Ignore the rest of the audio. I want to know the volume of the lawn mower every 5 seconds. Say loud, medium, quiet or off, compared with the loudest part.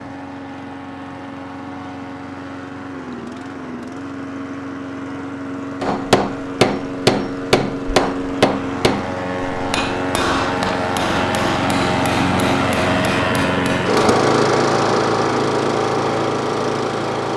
quiet, medium, loud, loud.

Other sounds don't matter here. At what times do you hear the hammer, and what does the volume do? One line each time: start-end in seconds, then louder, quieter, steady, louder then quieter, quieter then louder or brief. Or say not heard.
5.8-14.0 quieter.